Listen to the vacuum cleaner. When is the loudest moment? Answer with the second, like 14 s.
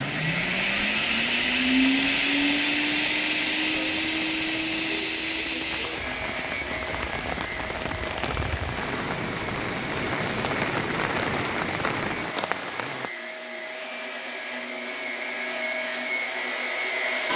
2 s.